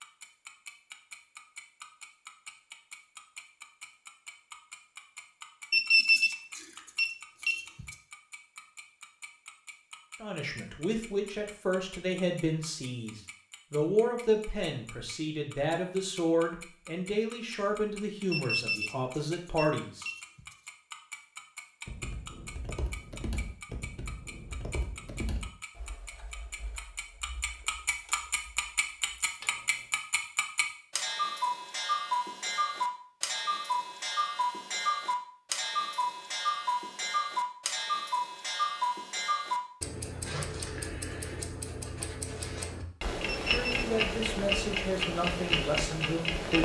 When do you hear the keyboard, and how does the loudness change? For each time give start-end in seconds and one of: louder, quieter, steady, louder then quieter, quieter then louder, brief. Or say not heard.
21.9-29.9 quieter then louder.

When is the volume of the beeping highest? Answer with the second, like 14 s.
6 s.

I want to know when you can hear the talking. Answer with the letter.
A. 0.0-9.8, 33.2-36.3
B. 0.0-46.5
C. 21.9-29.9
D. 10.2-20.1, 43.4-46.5
D.